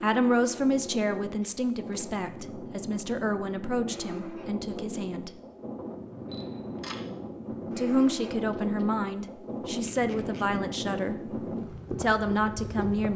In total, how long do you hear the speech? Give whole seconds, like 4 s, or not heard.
10 s.